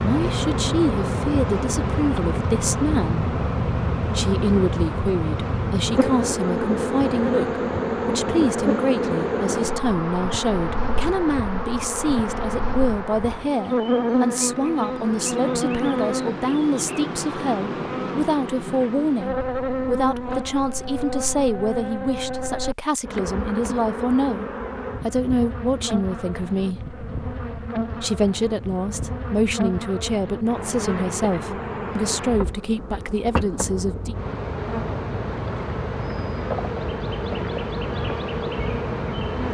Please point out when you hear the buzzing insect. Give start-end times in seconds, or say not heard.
0.0-39.5.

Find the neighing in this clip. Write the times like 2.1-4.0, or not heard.
not heard.